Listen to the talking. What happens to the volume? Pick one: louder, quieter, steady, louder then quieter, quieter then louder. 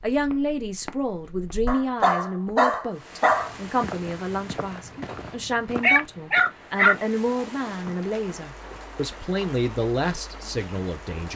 steady.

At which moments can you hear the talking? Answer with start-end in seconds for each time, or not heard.
0.0-11.3.